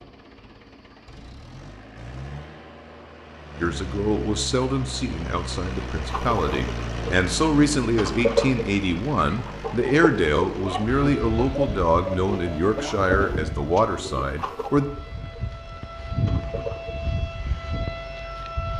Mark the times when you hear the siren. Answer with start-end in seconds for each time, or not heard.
10.8-18.7.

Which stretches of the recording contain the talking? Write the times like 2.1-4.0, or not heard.
3.6-14.8.